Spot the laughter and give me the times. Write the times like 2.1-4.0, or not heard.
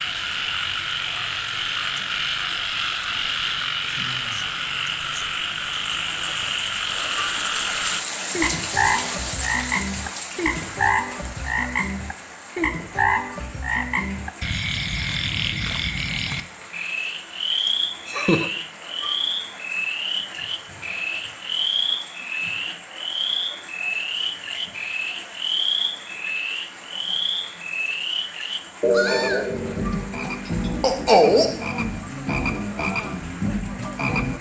17.6-18.5.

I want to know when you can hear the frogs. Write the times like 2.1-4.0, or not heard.
0.0-34.3.